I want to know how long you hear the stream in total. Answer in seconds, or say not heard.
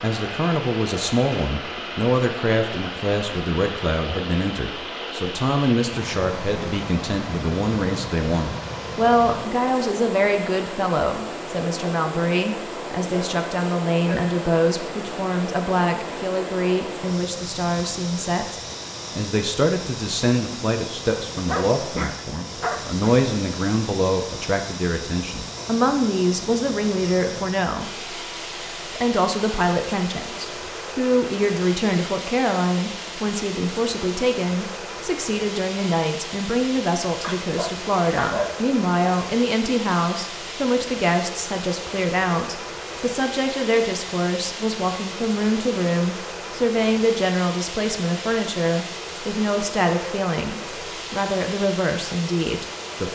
53 s.